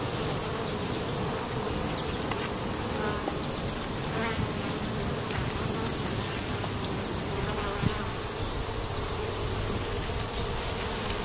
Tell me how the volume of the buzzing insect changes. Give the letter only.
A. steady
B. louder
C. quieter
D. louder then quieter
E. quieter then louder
A.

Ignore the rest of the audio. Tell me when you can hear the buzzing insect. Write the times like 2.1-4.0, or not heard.
0.0-11.1.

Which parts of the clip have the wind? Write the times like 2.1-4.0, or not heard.
0.0-11.1.